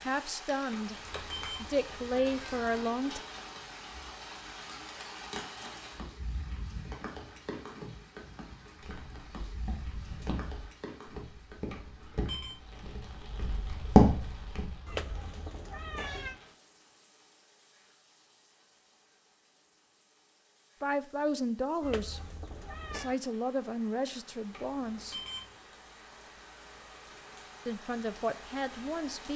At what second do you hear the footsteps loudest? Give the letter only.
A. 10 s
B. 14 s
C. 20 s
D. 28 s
B.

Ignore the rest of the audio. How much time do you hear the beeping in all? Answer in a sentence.
You can hear the beeping for 3 seconds altogether.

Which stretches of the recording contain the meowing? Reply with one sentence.
The meowing can be heard from 1.1 to 2.9 s, from 14.8 to 16.4 s and from 21.8 to 23.1 s.